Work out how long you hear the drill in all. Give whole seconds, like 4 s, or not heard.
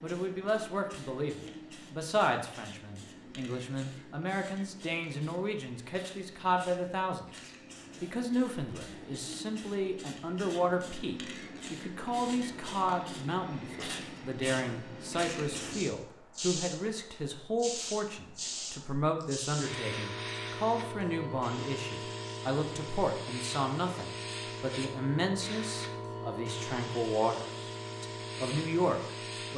not heard.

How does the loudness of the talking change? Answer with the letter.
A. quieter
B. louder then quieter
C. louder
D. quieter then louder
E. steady
E.